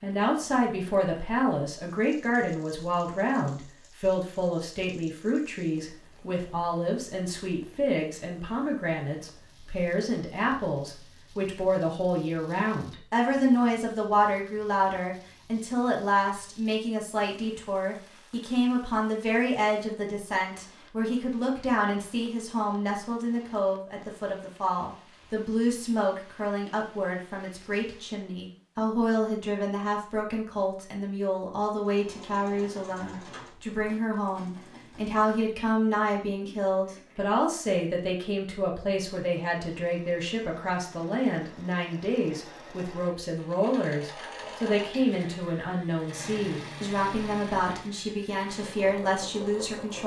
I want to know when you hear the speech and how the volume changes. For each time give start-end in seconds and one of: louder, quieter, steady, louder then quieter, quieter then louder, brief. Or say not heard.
0.0-50.0 steady.